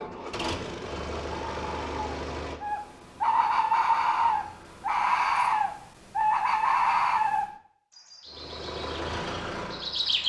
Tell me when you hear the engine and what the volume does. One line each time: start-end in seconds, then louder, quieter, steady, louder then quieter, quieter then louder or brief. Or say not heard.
0.0-5.0 quieter
8.2-10.2 brief.